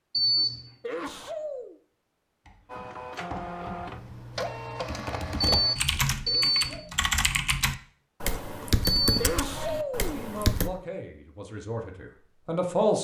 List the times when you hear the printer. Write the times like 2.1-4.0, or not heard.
2.6-5.8.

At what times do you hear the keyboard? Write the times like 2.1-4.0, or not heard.
2.5-10.7.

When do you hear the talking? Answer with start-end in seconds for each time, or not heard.
10.0-12.9.